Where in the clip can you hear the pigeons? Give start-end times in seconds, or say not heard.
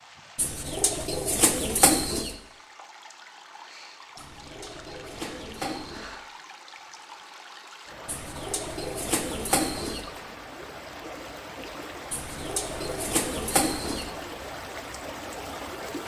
0.3-2.4, 4.2-6.1, 8.1-10.1, 12.1-14.1.